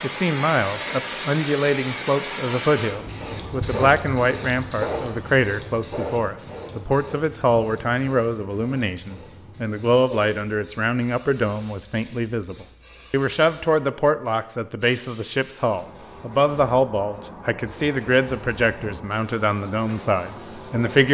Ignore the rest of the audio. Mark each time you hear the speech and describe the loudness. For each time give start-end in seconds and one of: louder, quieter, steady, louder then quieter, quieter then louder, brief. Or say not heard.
0.0-21.0 steady.